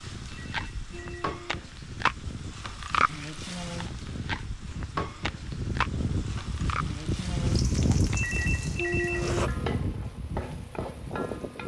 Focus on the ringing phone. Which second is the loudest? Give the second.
9 s.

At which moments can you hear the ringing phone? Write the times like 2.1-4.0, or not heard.
0.3-1.6, 8.1-9.5.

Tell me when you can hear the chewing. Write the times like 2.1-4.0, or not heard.
0.3-7.0, 7.9-9.5.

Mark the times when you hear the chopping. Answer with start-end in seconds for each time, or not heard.
not heard.